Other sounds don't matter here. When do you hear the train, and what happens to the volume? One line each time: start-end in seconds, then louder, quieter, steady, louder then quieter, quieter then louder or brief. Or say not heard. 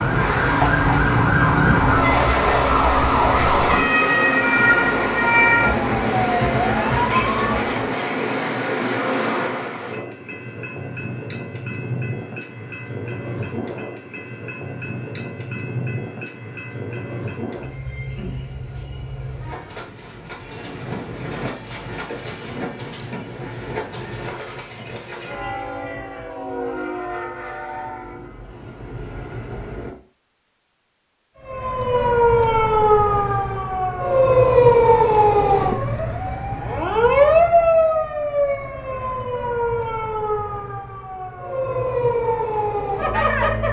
0.0-29.9 quieter.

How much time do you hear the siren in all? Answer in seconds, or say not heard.
20 s.